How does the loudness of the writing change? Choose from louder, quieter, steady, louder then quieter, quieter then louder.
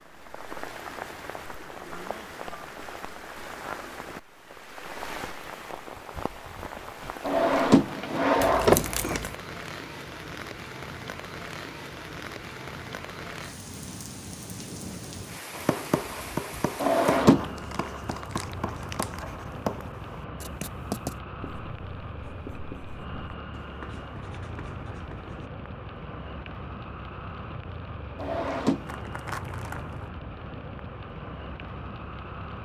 quieter.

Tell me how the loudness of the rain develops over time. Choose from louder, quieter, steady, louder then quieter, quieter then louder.
steady.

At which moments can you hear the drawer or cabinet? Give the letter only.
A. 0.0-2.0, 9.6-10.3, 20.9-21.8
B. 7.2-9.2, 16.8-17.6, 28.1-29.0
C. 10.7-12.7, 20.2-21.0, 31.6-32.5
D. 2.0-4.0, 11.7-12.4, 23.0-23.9
B.